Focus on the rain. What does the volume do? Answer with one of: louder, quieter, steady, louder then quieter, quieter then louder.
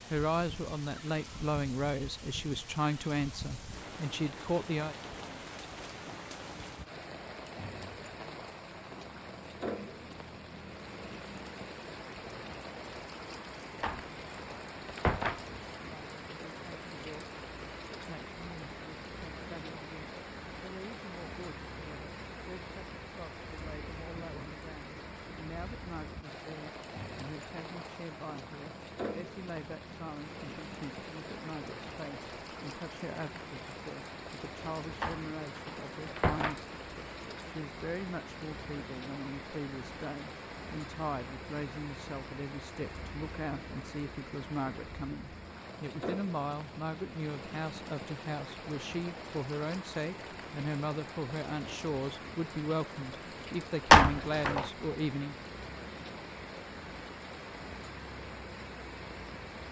steady.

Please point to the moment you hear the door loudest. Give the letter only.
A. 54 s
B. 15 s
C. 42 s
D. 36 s
A.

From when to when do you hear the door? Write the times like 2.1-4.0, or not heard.
13.8-15.4, 35.0-36.6, 53.9-54.6.